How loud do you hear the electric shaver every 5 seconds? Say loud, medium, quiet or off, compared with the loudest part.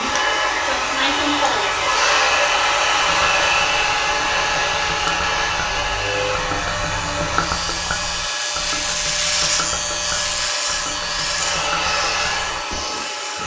medium, loud, loud.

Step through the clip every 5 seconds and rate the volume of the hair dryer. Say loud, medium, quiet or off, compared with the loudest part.
loud, medium, medium.